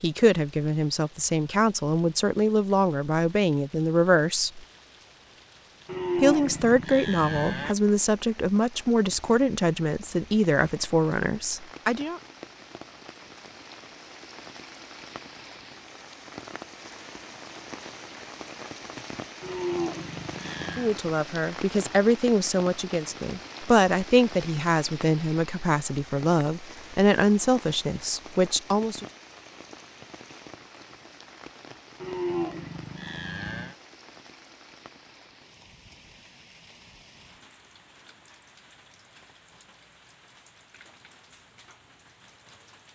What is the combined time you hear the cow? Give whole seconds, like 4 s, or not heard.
5 s.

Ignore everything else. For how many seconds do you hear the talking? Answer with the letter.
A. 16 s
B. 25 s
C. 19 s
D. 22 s
C.